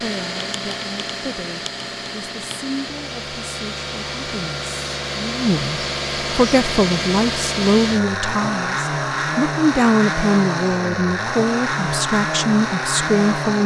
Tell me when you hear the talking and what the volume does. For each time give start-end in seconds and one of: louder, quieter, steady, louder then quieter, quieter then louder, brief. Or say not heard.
0.0-13.6 louder.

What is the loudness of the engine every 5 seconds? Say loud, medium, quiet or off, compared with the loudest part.
medium, loud, loud.